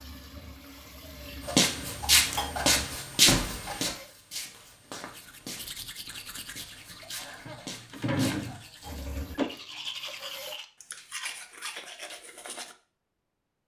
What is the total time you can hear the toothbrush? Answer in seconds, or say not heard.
8 s.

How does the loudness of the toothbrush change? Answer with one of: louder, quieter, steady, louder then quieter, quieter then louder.
quieter then louder.